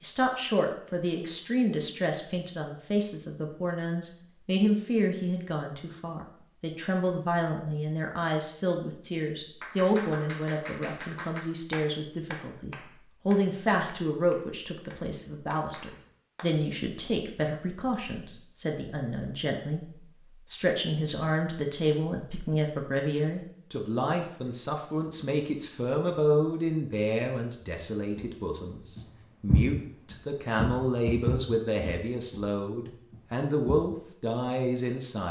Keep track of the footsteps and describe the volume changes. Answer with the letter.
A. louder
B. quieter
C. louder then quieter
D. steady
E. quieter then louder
C.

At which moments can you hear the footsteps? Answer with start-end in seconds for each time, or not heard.
28.1-33.8.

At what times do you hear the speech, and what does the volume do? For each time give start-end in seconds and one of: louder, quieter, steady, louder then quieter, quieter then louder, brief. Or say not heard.
0.0-35.2 steady.